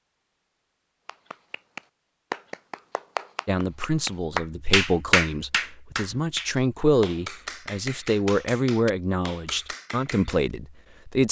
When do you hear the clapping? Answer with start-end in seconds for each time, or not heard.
1.1-10.4.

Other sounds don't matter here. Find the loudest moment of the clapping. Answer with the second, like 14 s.
5 s.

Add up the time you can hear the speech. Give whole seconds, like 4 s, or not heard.
8 s.